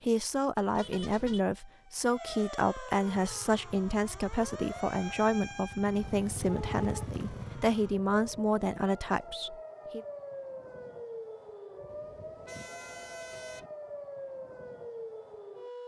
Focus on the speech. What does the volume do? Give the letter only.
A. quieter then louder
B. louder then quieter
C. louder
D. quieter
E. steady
E.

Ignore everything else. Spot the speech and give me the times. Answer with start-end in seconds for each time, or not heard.
0.0-10.1.